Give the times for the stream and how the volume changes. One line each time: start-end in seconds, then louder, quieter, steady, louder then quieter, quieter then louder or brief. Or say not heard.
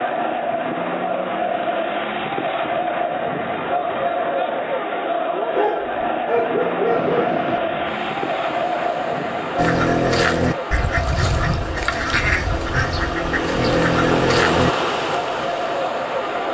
6.8-16.4 louder.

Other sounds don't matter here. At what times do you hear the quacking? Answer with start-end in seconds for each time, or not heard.
9.6-14.7.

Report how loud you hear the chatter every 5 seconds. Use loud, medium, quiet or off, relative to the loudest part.
loud, loud, medium, loud.